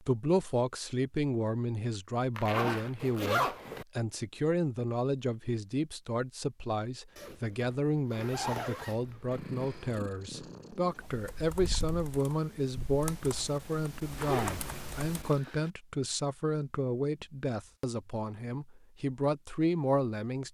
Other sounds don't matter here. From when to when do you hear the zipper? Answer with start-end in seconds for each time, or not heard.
2.4-3.9, 7.2-9.6, 14.2-15.7.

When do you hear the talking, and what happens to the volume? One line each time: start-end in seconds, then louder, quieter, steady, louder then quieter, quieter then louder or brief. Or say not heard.
0.0-20.4 steady.